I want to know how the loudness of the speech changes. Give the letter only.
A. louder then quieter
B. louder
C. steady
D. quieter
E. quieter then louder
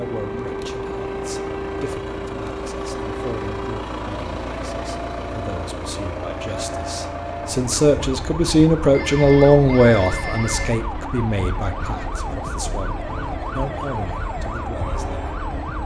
A.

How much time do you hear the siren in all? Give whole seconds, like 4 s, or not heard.
16 s.